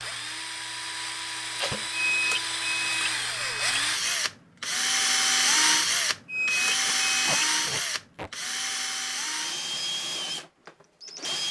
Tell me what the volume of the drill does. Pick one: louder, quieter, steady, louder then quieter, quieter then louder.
louder then quieter.